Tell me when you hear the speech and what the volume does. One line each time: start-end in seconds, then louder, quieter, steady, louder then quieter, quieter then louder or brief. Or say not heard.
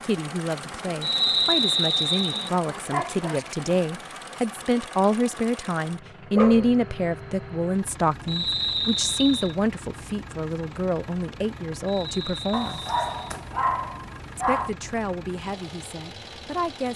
0.0-12.8 louder then quieter
14.3-16.9 brief.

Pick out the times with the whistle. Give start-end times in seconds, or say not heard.
1.0-2.5, 8.2-9.6, 11.8-13.3.